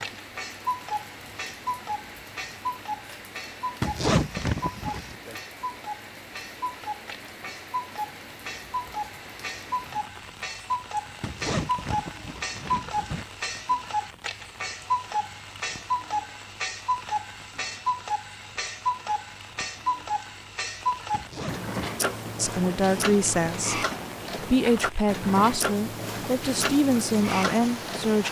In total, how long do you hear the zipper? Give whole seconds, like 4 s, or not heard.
4 s.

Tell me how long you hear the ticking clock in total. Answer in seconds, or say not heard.
28 s.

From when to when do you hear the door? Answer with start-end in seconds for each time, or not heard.
not heard.